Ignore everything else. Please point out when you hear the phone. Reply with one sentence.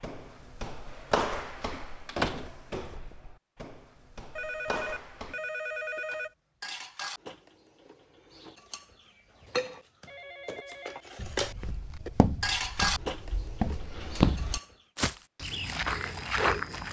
You can hear the phone from 4.3 to 6.3 s and from 10.1 to 11.1 s.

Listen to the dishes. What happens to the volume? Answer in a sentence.
The volume of the dishes goes down, then up.